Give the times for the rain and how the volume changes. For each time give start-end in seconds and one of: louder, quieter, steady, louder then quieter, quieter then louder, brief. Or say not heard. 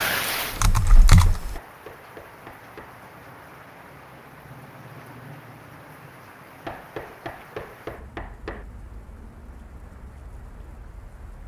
0.0-11.4 quieter.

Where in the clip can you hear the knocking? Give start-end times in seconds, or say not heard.
0.9-3.0, 6.7-8.7.